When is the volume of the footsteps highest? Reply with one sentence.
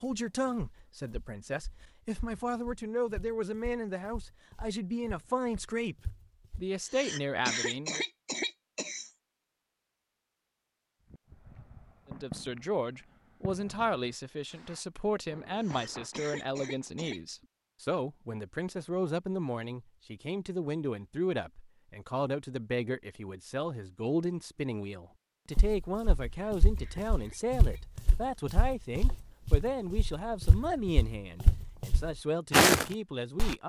The volume of the footsteps peaks at 33 seconds.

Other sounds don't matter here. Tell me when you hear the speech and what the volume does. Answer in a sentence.
The speech can be heard from 0.0 to 8.1 s, at a steady volume; and from 12.1 to 33.6 s, at a steady volume.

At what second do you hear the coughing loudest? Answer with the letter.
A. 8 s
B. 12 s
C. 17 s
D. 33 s
A.